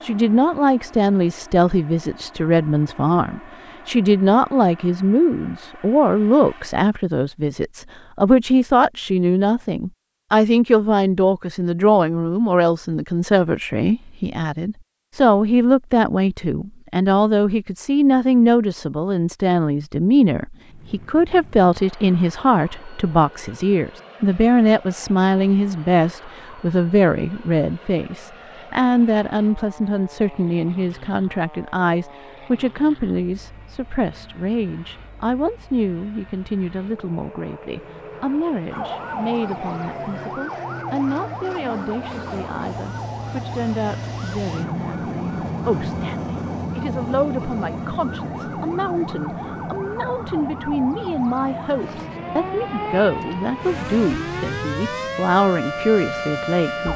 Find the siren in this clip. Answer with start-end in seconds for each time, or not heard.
38.7-56.9.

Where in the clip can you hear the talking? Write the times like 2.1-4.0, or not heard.
0.0-56.9.